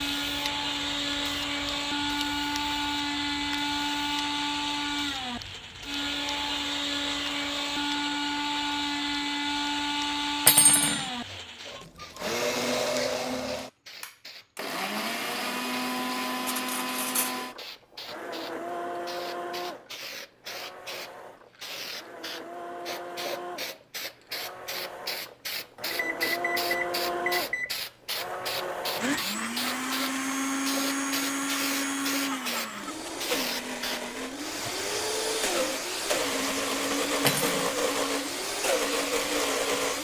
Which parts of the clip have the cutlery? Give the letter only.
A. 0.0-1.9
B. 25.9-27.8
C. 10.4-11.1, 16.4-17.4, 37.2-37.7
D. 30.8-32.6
C.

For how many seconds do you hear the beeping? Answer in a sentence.
The beeping can be heard for 2 seconds in total.